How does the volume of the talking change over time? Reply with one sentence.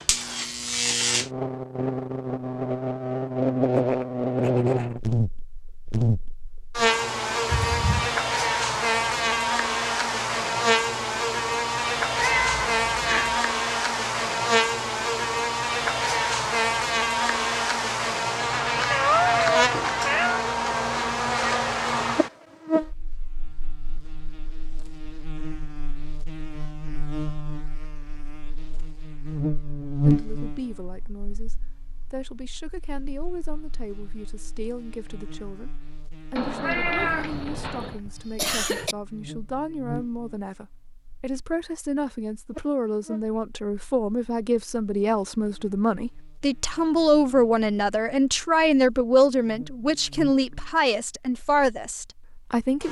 The volume of the talking goes up.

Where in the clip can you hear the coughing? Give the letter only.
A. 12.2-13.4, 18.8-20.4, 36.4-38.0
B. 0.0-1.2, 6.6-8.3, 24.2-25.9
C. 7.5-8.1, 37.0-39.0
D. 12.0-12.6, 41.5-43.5
C.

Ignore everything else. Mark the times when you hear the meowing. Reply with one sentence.
The meowing can be heard from 12.2 to 13.4 s, from 18.8 to 20.4 s and from 36.4 to 38.0 s.